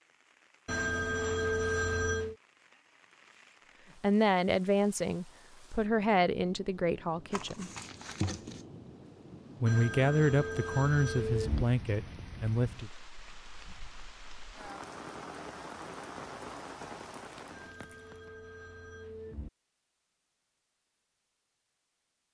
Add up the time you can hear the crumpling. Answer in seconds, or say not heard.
2 s.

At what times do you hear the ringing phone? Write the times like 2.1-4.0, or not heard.
0.7-2.4, 9.7-11.7, 17.5-19.5.